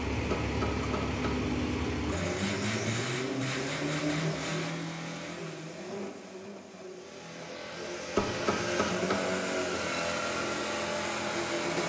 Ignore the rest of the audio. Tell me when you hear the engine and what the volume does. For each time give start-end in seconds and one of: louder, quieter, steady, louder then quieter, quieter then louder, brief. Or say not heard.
0.0-11.8 quieter then louder.